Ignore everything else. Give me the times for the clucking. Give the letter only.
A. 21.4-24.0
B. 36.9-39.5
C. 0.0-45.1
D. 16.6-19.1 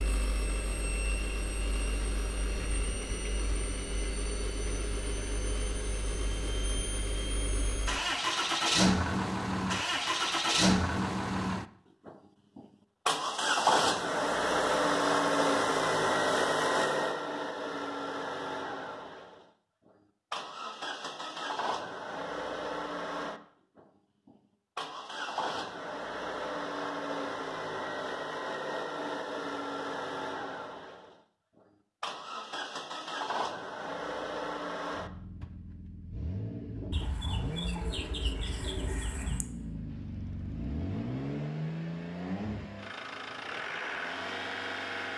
B.